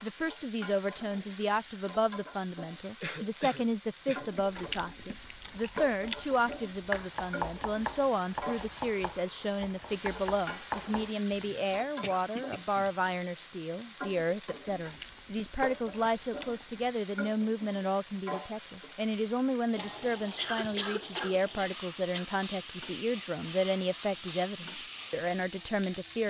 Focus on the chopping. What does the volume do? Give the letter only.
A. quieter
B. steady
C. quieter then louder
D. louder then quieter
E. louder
C.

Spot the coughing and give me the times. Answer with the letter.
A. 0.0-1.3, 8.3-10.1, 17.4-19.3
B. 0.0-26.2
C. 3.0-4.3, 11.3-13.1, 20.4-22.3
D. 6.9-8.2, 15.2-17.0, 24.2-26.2
C.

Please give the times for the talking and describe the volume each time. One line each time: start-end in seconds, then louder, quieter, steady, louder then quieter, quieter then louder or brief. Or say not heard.
0.0-26.2 steady.